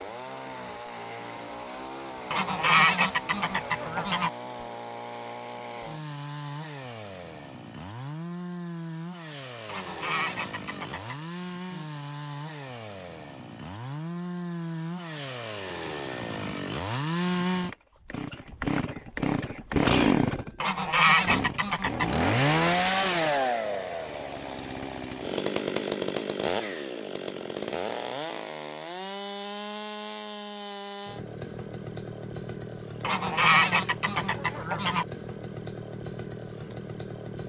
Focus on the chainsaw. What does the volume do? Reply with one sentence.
The volume of the chainsaw goes up, then down.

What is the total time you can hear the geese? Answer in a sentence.
The geese can be heard for 7 seconds in total.